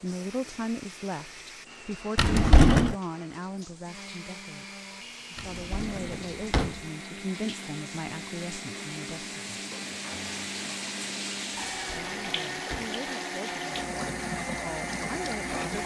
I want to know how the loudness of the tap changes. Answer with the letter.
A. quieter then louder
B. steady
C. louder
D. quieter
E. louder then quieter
C.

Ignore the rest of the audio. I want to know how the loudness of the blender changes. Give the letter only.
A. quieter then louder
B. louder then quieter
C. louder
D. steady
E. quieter
C.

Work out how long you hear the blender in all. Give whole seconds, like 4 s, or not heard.
16 s.